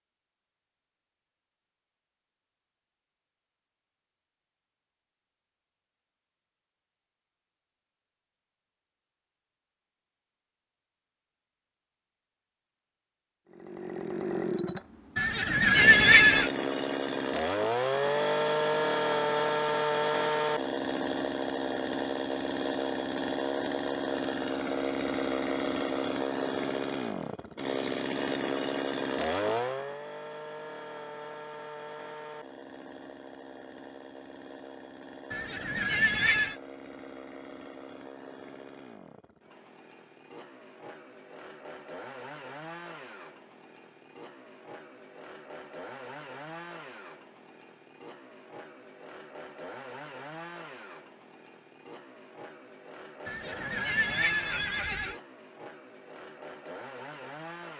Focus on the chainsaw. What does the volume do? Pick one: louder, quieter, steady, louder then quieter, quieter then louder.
quieter.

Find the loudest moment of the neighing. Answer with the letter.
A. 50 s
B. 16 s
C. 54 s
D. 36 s
B.